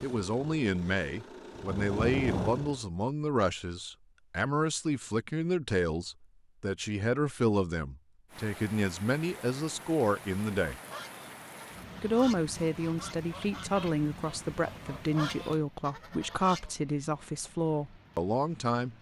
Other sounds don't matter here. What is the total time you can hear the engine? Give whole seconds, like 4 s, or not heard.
3 s.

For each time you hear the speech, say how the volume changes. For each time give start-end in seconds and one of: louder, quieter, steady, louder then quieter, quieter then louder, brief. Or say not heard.
0.0-10.8 steady
12.0-18.9 steady.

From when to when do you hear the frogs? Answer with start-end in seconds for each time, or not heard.
not heard.